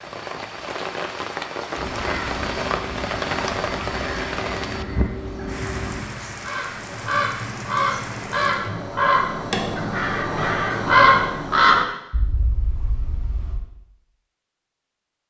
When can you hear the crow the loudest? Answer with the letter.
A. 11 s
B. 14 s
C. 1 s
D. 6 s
A.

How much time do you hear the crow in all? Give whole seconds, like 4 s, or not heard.
12 s.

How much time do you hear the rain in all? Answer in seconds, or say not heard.
9 s.